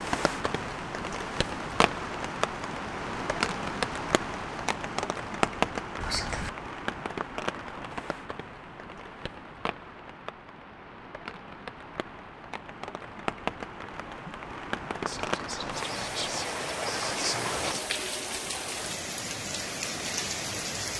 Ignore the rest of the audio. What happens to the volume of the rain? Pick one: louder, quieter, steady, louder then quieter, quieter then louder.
quieter then louder.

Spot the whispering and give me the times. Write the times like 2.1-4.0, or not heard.
6.0-6.5, 15.1-17.9.